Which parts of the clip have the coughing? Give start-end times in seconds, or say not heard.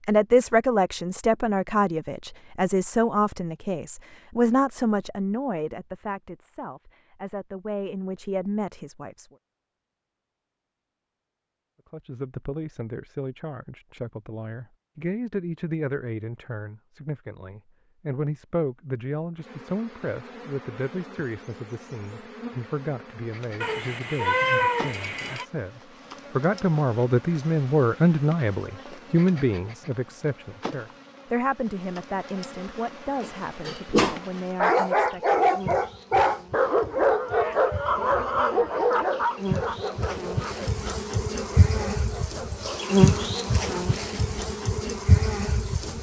not heard.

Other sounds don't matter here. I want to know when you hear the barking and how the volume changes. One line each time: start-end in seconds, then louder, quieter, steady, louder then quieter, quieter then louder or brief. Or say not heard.
33.2-43.6 quieter.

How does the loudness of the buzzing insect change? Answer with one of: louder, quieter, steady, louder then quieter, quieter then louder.
louder.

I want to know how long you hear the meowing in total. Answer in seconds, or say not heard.
2 s.